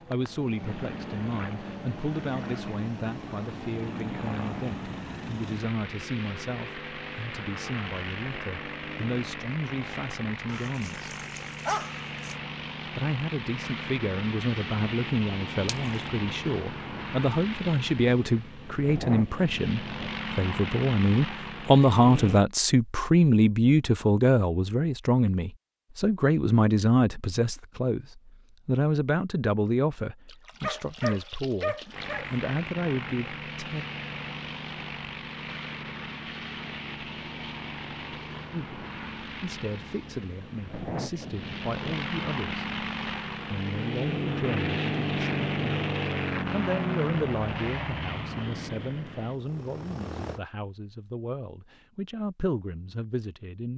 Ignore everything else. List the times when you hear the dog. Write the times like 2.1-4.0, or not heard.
10.4-12.3, 30.6-32.3.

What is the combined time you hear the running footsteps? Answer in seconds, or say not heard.
not heard.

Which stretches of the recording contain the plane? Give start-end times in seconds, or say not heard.
0.0-22.4, 31.9-50.4.